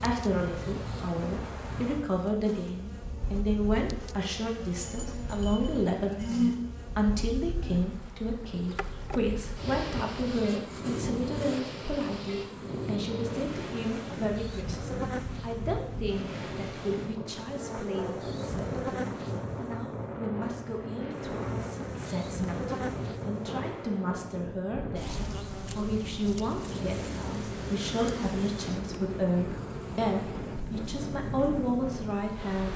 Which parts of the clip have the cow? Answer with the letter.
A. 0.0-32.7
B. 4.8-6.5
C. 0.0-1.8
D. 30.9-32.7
B.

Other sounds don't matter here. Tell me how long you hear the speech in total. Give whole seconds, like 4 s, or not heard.
33 s.